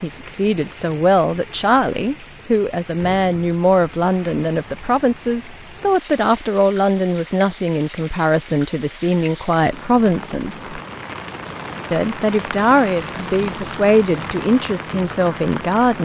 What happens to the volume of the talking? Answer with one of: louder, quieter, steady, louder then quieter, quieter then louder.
steady.